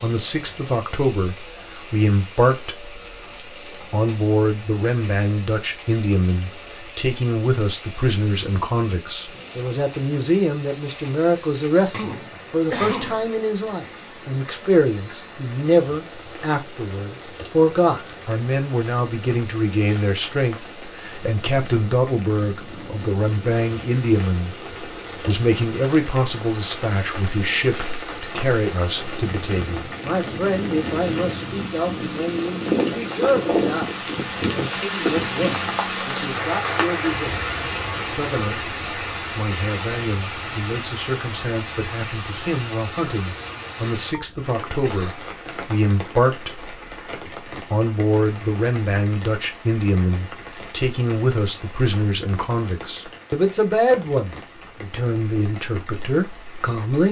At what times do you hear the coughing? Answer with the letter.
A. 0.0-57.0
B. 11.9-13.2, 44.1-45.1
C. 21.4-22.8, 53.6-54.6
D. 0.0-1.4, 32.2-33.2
B.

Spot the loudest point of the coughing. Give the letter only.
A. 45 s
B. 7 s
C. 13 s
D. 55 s
C.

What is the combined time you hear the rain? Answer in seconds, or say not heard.
57 s.